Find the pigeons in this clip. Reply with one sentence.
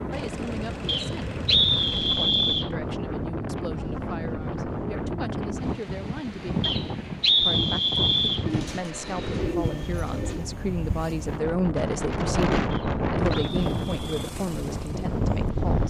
You can hear the pigeons from 8.4 to 10.5 s.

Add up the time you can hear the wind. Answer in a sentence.
The wind can be heard for 16 seconds in total.